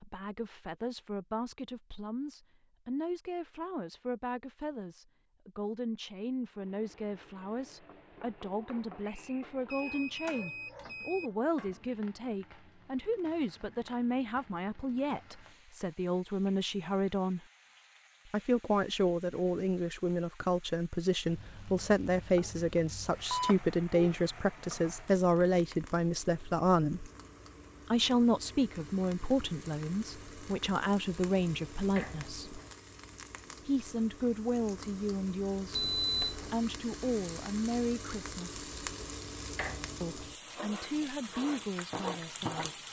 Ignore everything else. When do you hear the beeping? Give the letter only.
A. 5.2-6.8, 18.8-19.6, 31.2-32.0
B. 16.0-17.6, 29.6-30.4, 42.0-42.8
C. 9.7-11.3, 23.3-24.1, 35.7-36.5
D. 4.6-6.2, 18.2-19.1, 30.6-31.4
C.